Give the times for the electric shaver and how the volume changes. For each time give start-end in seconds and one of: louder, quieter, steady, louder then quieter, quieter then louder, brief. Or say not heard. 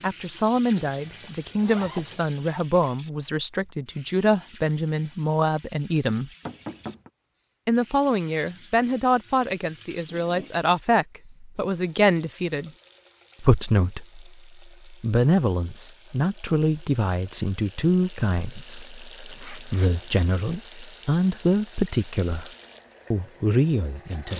not heard.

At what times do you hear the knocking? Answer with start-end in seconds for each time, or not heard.
6.5-7.1.